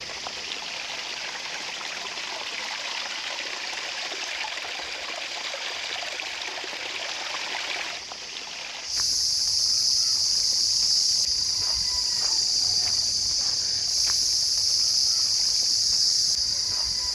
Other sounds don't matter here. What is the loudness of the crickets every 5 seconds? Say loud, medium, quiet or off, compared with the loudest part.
quiet, medium, loud, loud.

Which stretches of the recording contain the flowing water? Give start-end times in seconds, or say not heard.
0.0-17.1.